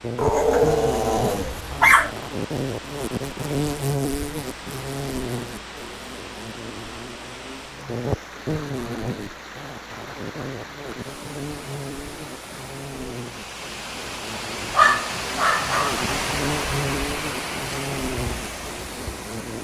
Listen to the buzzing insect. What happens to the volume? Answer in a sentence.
The loudness of the buzzing insect goes down, then up.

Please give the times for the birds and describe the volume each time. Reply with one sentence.
You can't hear the birds here.